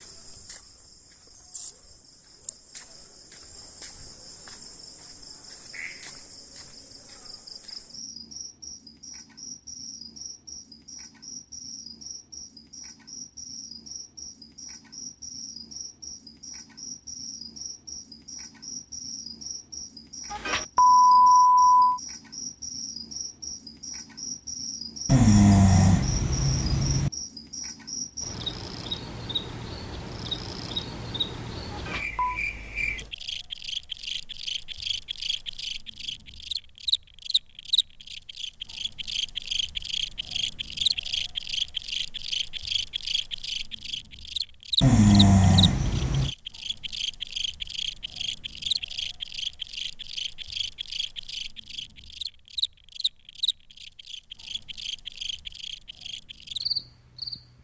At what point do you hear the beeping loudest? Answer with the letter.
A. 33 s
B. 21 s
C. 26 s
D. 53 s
B.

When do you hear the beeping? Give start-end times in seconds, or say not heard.
20.3-22.0, 31.7-32.4.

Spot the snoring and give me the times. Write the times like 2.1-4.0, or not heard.
25.1-27.1, 44.8-46.3.